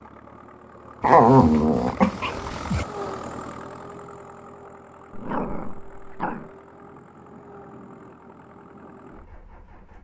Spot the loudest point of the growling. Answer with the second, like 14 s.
1 s.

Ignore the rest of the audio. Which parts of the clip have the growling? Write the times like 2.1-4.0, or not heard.
1.0-2.9, 5.1-6.5.